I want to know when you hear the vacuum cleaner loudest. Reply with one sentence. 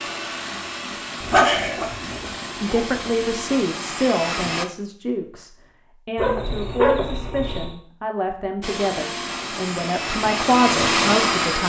The loudest moment of the vacuum cleaner is at 11 seconds.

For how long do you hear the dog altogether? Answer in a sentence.
You can hear the dog for 4 seconds altogether.